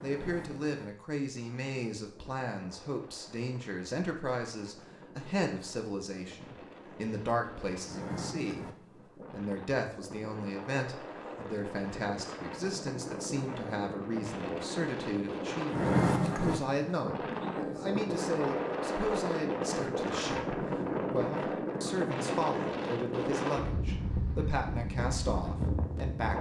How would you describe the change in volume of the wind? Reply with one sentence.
The volume of the wind goes up.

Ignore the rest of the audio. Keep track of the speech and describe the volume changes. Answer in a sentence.
The volume of the speech stays about the same.